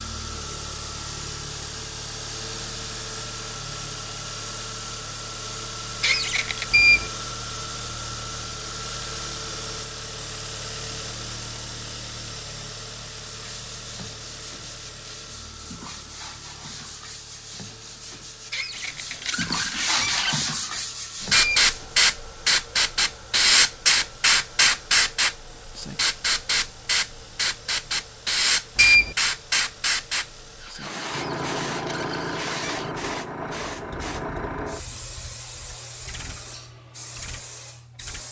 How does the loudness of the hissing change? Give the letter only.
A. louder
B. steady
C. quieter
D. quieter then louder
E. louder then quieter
C.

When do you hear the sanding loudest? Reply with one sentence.
The volume of the sanding peaks at 20 seconds.